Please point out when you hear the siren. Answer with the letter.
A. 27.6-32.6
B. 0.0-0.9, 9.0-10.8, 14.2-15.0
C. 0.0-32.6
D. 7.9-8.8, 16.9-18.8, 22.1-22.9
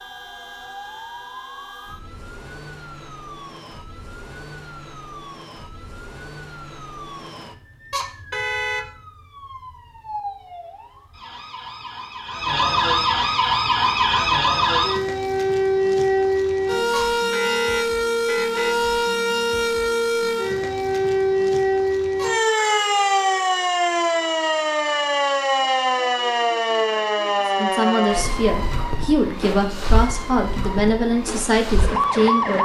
C.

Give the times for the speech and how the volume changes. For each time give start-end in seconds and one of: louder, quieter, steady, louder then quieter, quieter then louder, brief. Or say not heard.
27.6-32.6 steady.